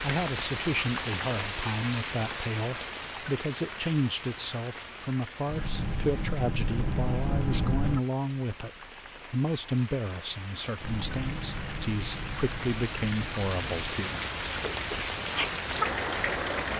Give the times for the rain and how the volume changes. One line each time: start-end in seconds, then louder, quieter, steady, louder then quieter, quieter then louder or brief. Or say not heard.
0.0-16.7 quieter then louder.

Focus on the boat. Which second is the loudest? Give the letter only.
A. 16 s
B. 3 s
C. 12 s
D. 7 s
D.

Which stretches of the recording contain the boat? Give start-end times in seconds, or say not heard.
5.5-8.0, 10.8-16.7.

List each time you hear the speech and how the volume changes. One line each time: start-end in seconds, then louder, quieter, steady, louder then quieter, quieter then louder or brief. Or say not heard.
0.0-14.1 steady.